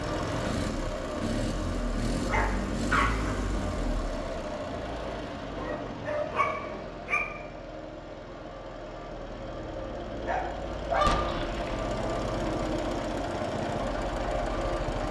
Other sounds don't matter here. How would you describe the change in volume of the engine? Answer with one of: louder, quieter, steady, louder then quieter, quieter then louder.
quieter then louder.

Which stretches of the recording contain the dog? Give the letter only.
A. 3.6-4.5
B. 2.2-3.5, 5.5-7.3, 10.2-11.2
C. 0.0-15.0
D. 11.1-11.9
B.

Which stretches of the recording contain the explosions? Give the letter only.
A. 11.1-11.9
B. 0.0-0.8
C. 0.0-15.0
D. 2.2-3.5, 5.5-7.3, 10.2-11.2
A.